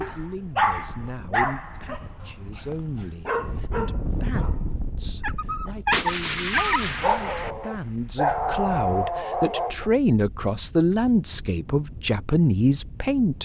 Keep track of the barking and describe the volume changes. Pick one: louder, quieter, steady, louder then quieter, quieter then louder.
quieter then louder.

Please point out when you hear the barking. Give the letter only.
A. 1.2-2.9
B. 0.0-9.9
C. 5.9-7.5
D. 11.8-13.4
B.